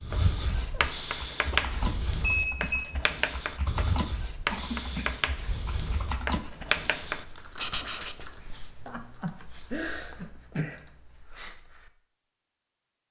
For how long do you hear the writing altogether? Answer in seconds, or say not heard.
8 s.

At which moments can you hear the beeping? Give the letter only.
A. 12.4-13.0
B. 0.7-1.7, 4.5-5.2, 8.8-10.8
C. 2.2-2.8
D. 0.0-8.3
C.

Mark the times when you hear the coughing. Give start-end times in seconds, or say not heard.
0.7-1.7, 4.5-5.2, 8.8-10.8.